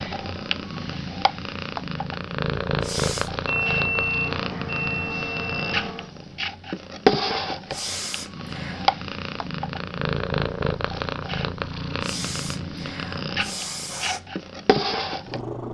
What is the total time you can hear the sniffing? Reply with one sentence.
You can hear the sniffing for 4 seconds altogether.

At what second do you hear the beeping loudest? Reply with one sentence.
The loudest moment of the beeping is at 4 seconds.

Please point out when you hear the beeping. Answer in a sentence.
The beeping can be heard from 3.5 to 6.0 s.